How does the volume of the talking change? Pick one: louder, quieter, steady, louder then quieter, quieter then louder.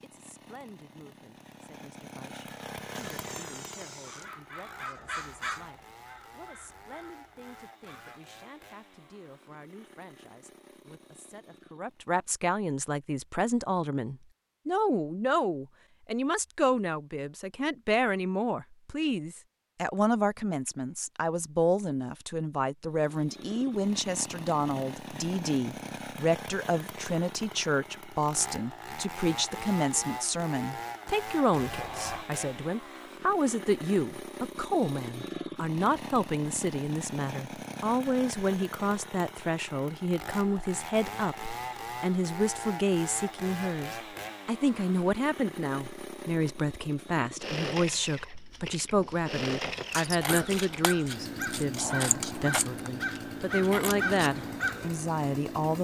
louder.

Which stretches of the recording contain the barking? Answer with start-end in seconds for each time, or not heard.
not heard.